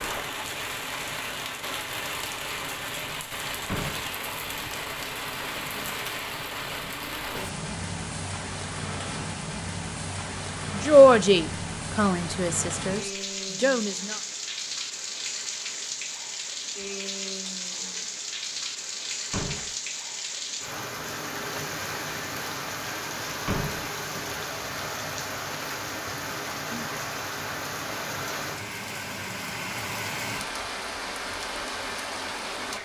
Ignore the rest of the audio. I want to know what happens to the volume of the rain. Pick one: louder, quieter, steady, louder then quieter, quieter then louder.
steady.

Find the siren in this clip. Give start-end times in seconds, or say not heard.
not heard.